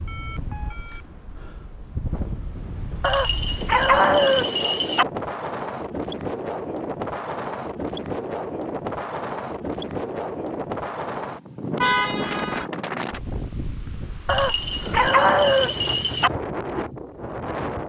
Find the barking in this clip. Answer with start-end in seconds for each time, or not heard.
3.0-5.0, 14.2-16.3.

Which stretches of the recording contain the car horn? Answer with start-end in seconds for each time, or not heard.
11.8-12.7.